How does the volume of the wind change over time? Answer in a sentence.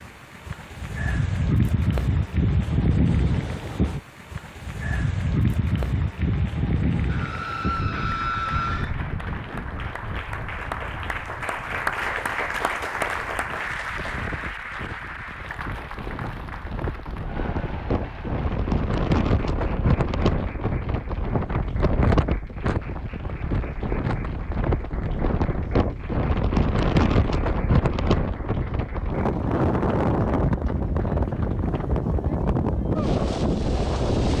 The volume of the wind goes down, then up.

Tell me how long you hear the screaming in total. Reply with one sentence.
The screaming can be heard for 2 seconds in total.